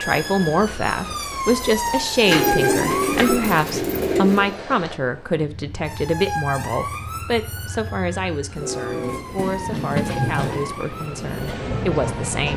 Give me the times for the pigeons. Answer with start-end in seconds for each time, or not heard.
2.2-4.5, 8.6-10.8.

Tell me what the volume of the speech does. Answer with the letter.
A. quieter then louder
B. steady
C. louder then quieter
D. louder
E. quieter
E.